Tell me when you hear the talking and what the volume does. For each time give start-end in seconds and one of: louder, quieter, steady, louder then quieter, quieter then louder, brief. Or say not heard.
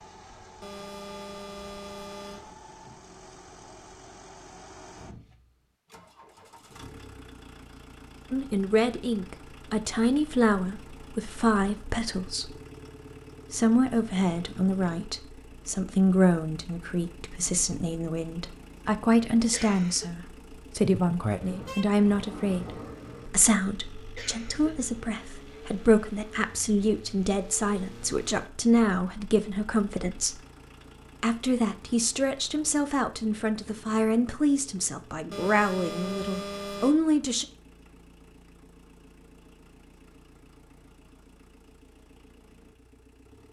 8.3-12.6 quieter then louder
13.5-30.4 steady
31.2-37.5 steady.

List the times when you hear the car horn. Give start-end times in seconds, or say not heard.
0.6-2.5, 21.4-23.4, 35.3-37.0.